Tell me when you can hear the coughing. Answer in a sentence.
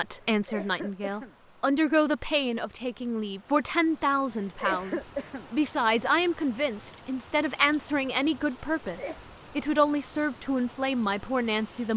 You can hear the coughing from 0.1 to 1.4 s, from 4.3 to 5.5 s and from 8.8 to 9.2 s.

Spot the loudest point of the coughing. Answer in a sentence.
The volume of the coughing peaks at 5 seconds.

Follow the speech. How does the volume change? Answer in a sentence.
The loudness of the speech stays about the same.